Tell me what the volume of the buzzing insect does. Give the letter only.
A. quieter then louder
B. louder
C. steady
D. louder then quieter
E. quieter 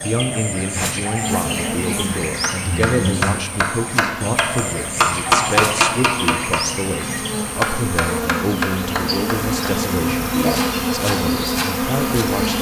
A.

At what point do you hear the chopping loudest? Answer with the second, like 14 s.
5 s.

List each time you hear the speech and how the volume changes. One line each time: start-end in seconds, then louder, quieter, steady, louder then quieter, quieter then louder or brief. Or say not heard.
0.0-12.5 steady.